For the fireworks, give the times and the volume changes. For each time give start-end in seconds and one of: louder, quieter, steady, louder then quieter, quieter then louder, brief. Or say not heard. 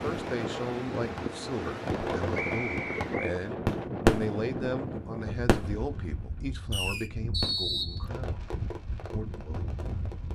0.1-10.3 louder then quieter.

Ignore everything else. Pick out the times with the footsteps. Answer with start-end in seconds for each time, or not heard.
not heard.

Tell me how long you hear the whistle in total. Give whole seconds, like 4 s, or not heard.
2 s.